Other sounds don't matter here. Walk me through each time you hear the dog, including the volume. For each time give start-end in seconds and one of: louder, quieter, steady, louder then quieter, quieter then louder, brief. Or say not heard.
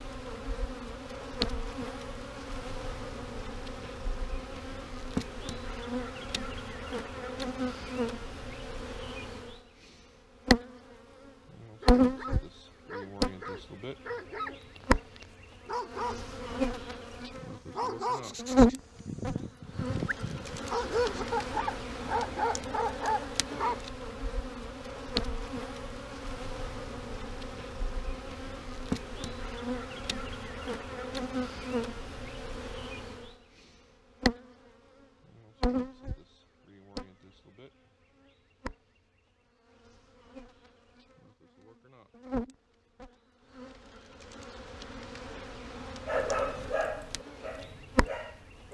11.8-23.8 louder
46.0-48.6 brief.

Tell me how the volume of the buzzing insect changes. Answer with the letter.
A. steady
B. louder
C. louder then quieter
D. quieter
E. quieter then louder
C.